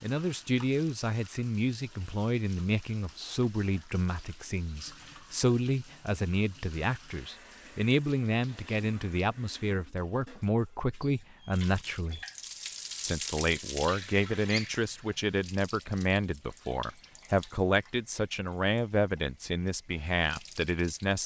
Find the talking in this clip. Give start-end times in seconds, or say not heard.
0.0-12.2, 13.0-21.2.